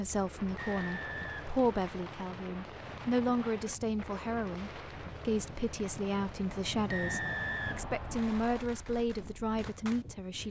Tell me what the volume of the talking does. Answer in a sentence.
The volume of the talking stays about the same.